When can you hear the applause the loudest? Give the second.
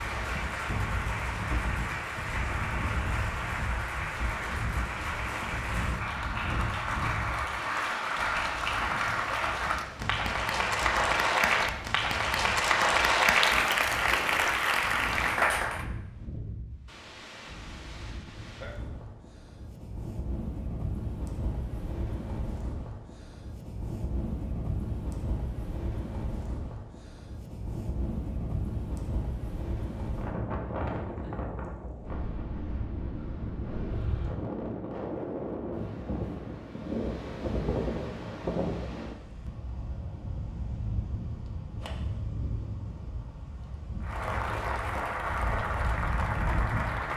13 s.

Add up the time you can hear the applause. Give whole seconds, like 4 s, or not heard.
19 s.